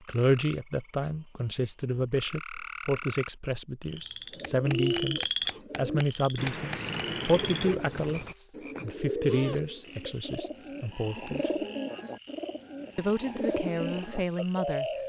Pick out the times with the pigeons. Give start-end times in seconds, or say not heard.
4.3-15.0.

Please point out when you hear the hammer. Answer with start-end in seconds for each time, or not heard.
4.3-6.8.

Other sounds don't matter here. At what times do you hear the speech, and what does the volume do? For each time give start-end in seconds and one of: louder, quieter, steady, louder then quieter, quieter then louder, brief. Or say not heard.
0.0-11.5 steady
12.9-14.8 brief.